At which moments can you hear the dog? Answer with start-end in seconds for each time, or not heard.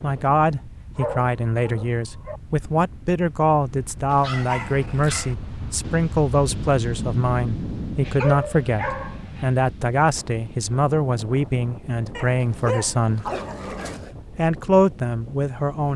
0.9-2.4, 4.1-5.3, 8.0-9.5, 12.2-14.2.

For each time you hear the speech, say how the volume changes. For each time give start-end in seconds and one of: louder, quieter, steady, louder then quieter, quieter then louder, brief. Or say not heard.
0.0-13.3 steady
14.3-15.9 brief.